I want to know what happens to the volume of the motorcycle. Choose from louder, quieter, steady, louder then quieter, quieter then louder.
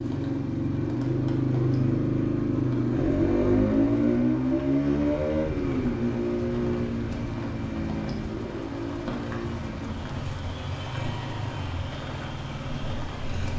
quieter.